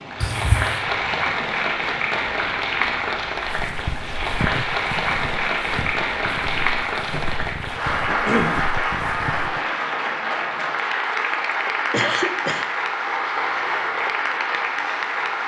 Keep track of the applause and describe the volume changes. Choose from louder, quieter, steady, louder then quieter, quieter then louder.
steady.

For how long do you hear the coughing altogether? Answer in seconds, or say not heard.
2 s.